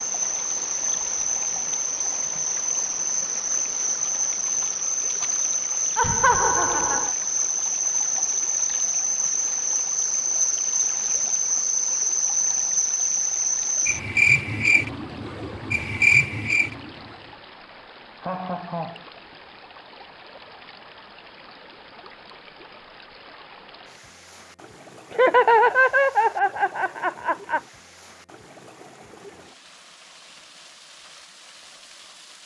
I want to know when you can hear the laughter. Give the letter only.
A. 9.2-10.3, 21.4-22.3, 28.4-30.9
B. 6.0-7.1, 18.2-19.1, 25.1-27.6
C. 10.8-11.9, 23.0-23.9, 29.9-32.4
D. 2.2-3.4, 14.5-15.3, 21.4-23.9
B.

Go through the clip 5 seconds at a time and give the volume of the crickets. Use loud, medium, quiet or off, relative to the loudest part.
loud, loud, loud, loud, off, off, off.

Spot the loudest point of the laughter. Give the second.
26 s.